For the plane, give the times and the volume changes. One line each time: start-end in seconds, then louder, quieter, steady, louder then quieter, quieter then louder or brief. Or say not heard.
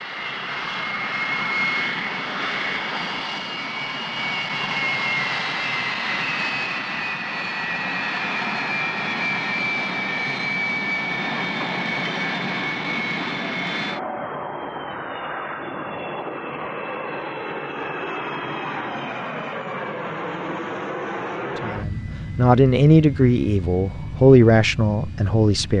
0.0-25.7 quieter.